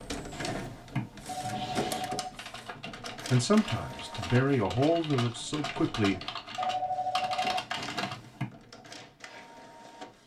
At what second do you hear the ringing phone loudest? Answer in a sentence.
The volume of the ringing phone peaks at 7 seconds.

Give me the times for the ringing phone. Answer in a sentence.
The ringing phone can be heard from 1.2 to 2.9 s and from 6.5 to 8.2 s.